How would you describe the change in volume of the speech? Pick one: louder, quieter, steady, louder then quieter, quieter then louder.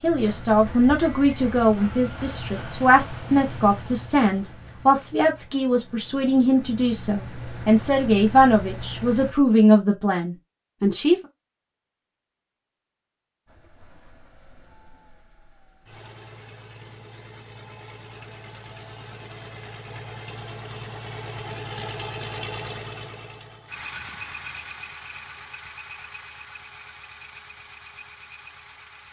steady.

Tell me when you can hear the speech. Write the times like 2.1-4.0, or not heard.
0.0-11.2.